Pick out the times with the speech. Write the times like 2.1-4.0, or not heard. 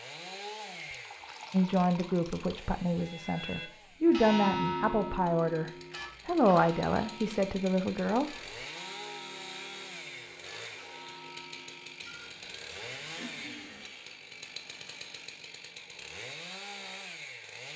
1.5-8.3.